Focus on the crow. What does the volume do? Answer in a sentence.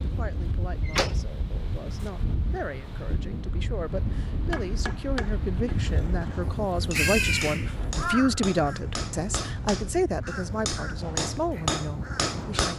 The loudness of the crow goes down.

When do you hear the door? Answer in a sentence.
You can hear the door from 0.8 to 1.2 s.